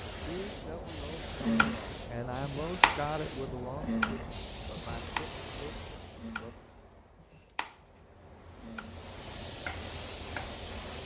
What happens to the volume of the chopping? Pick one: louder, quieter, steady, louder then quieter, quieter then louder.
quieter then louder.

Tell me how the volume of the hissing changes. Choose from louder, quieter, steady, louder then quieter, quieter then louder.
quieter then louder.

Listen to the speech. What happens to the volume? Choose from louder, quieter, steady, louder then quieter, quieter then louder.
louder then quieter.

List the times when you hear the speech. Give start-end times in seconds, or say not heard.
0.1-6.5.